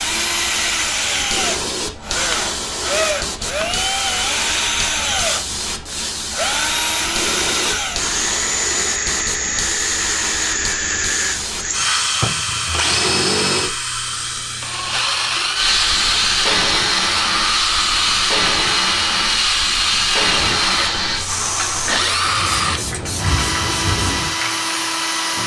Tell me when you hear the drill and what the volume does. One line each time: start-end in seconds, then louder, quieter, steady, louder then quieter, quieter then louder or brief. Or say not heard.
0.0-25.4 steady.